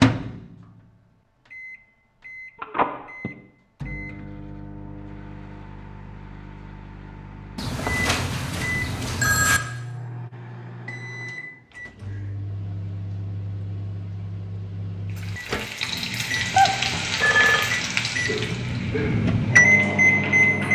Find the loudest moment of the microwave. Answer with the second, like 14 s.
20 s.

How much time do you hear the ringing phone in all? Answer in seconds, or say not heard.
4 s.